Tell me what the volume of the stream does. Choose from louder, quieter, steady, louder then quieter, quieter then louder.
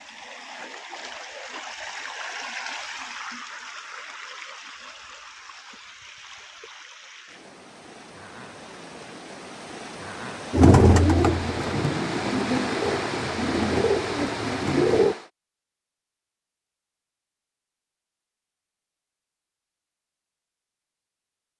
quieter then louder.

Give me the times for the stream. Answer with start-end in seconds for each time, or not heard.
0.0-15.3.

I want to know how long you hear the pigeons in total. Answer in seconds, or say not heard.
5 s.